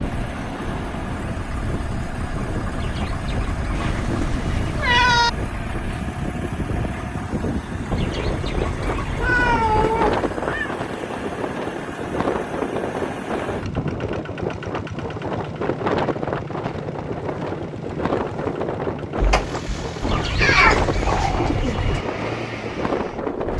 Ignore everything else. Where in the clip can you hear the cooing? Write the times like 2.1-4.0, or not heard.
2.7-4.7, 7.9-9.9, 20.0-22.1.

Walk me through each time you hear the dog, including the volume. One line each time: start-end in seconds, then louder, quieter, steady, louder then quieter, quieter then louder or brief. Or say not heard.
not heard.